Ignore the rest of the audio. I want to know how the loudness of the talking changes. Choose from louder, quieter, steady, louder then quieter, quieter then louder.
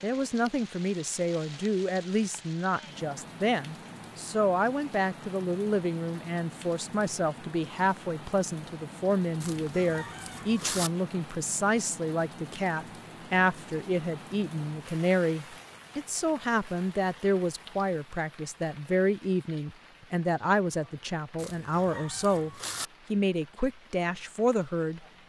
steady.